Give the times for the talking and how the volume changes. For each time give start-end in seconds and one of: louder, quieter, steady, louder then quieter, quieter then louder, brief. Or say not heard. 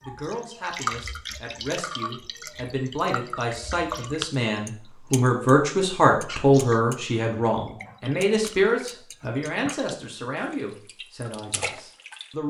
0.0-12.4 louder then quieter.